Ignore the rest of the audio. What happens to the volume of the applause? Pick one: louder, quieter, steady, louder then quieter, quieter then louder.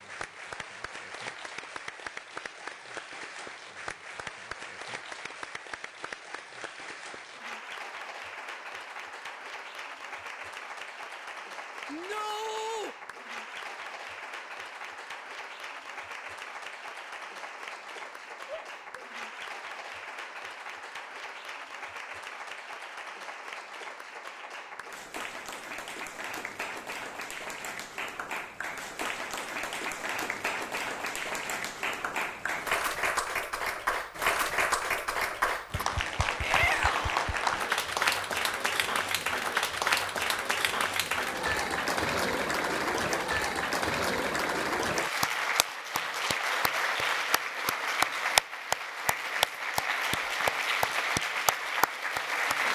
louder.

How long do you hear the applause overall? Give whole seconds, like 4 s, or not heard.
53 s.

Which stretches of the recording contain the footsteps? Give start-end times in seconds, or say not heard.
not heard.